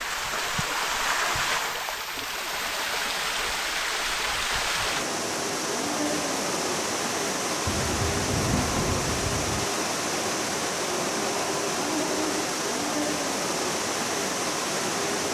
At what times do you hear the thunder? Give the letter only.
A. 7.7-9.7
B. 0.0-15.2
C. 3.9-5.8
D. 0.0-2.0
A.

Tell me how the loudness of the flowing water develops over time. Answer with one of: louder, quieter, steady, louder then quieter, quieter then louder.
steady.